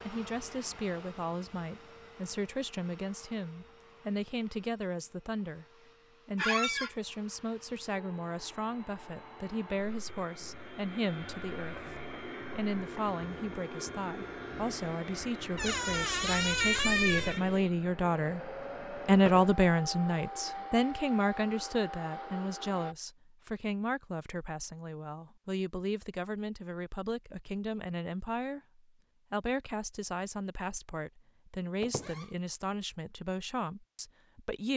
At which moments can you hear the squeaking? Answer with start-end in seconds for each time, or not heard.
6.3-6.9, 15.6-17.4, 31.8-32.2.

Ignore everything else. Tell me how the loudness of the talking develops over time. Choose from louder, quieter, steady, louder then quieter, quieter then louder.
louder then quieter.